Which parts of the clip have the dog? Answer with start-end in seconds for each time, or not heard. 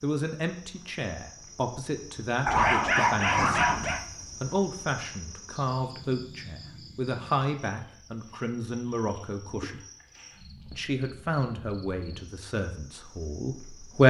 2.5-4.0.